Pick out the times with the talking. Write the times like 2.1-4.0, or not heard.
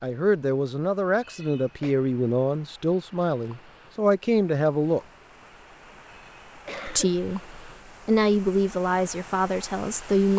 0.0-5.0, 6.8-10.3.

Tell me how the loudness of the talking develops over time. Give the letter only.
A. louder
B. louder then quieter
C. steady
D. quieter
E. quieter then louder
C.